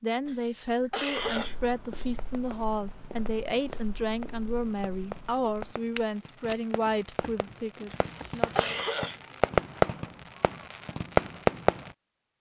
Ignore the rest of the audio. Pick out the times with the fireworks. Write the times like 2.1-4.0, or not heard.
2.1-11.9.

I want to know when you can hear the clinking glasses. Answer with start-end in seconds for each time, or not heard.
not heard.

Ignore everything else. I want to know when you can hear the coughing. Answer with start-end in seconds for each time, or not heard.
0.2-1.6, 7.9-9.2.